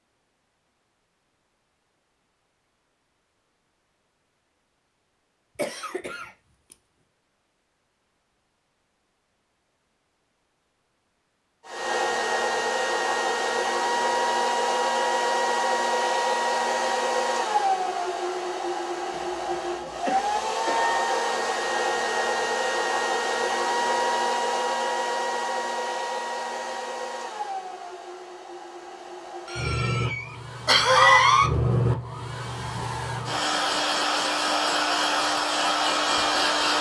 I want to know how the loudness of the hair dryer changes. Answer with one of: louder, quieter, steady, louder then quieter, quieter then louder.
quieter then louder.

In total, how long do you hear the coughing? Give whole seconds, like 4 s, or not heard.
5 s.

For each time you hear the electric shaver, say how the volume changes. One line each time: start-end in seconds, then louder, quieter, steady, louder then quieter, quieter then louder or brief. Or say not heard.
not heard.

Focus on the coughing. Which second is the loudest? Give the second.
31 s.